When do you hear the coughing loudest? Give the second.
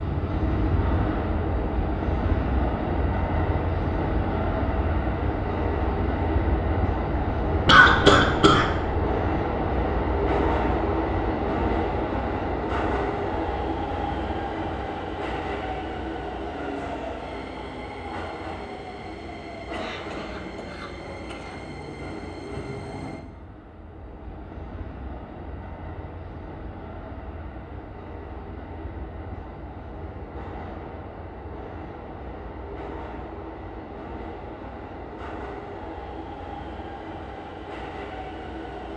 8 s.